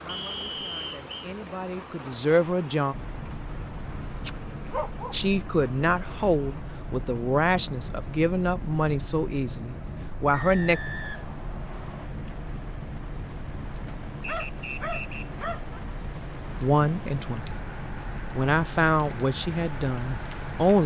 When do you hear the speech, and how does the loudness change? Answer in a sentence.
You can hear the speech briefly from 0.0 to 3.0 s; from 5.1 to 10.8 s, at a steady volume; briefly from 16.6 to 17.6 s; and briefly from 18.4 to 20.8 s.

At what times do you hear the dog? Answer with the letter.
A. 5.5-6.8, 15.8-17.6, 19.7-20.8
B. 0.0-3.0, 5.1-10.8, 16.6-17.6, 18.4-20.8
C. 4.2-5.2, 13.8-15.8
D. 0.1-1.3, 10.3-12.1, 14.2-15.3
C.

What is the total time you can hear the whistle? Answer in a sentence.
You can hear the whistle for 4 seconds altogether.